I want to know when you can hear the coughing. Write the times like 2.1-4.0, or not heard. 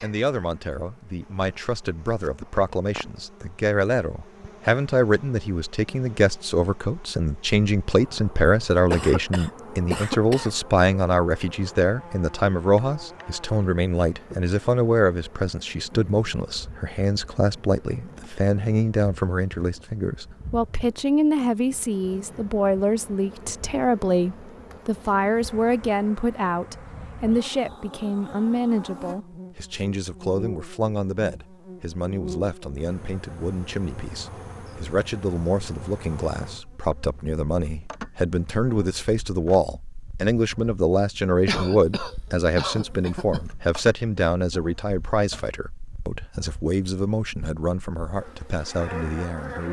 8.9-10.6, 41.5-43.5.